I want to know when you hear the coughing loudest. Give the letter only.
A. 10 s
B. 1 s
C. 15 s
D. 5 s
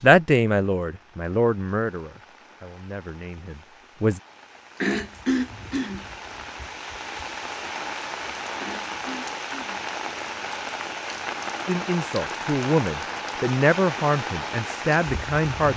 D.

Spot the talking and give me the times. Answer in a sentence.
The talking can be heard from 0.0 to 4.2 s and from 11.7 to 15.7 s.